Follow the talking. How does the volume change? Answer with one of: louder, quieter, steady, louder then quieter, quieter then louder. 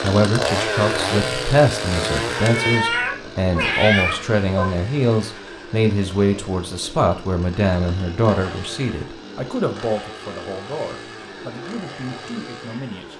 quieter.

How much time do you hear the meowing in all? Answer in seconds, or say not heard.
2 s.